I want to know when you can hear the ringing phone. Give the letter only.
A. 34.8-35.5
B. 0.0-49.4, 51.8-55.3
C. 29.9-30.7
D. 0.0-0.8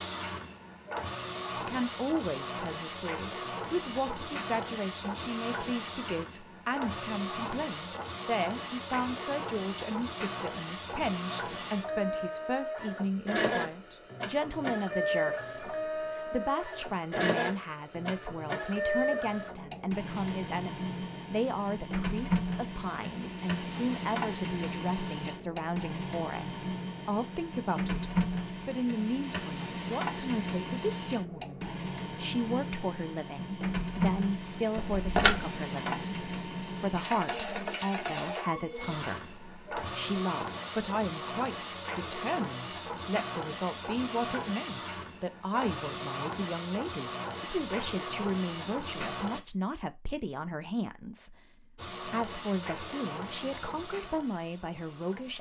A.